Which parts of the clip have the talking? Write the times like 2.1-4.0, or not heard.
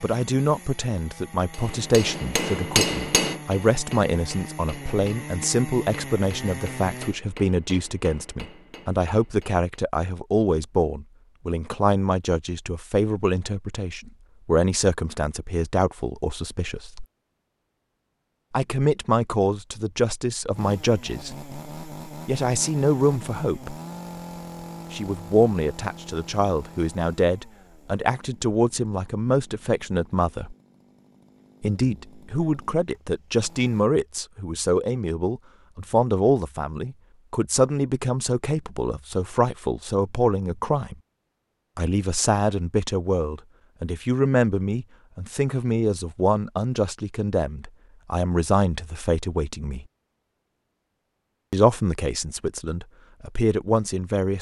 0.0-17.1, 18.5-23.8, 24.9-30.6, 31.6-41.0, 41.8-49.9, 51.5-54.3.